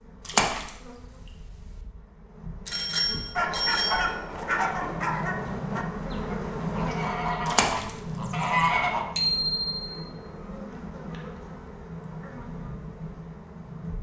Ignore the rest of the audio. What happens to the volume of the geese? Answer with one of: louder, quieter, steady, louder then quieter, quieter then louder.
quieter then louder.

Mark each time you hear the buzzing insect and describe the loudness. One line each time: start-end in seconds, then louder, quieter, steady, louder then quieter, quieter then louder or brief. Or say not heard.
0.0-13.9 louder then quieter.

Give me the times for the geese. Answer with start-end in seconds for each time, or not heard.
3.4-9.1.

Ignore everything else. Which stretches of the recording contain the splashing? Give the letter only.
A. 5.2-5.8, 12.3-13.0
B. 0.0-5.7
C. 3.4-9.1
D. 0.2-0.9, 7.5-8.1
D.